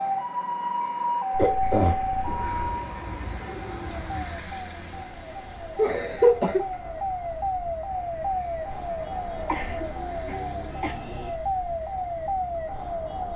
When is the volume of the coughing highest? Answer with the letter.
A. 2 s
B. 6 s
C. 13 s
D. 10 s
B.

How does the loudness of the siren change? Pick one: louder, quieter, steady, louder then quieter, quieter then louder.
quieter then louder.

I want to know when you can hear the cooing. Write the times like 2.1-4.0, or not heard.
2.2-4.5.